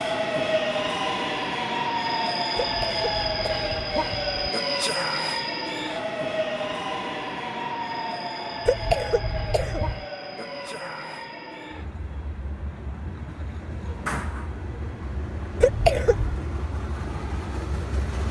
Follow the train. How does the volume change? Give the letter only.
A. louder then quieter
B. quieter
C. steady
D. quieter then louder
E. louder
B.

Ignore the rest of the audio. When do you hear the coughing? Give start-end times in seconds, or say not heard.
2.6-4.5, 8.7-10.1, 15.6-16.4.